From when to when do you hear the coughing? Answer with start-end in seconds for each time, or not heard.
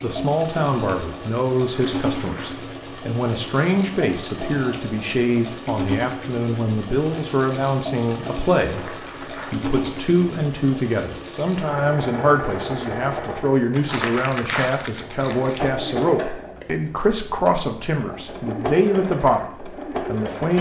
not heard.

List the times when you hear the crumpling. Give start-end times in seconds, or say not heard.
1.6-2.7, 8.6-9.7, 13.7-16.1.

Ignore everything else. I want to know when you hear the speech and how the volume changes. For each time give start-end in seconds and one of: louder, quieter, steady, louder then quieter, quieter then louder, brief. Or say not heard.
0.0-20.5 steady.